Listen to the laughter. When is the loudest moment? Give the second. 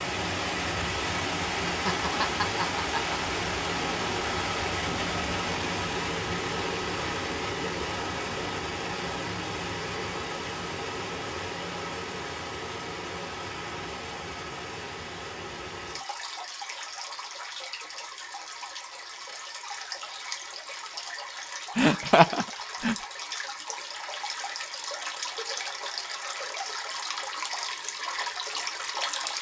22 s.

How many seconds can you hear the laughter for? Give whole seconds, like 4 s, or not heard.
3 s.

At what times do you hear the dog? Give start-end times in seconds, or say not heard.
not heard.